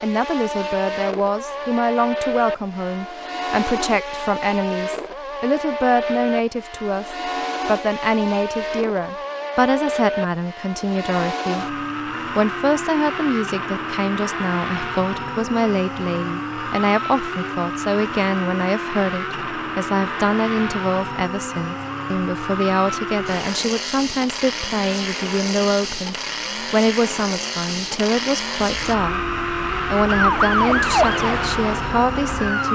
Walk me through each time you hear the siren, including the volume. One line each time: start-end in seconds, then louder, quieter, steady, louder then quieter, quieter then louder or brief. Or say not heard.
28.6-32.7 louder then quieter.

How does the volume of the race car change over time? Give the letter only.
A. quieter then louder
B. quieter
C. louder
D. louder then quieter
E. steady
E.